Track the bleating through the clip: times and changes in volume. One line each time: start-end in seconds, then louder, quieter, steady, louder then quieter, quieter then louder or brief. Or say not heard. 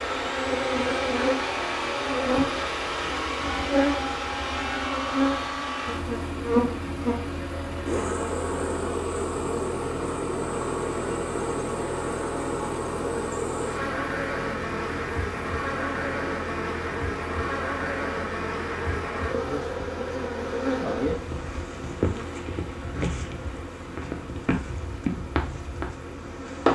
not heard.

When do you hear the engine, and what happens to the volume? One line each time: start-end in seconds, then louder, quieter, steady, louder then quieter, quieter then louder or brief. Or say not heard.
0.0-26.7 quieter.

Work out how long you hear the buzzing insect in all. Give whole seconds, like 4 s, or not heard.
27 s.